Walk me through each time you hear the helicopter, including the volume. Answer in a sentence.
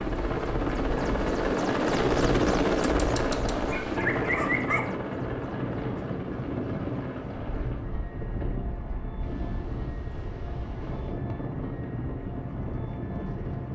You can hear the helicopter from 0.0 to 13.6 s, getting quieter.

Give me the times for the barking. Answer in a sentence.
The barking can be heard from 3.0 to 4.8 s.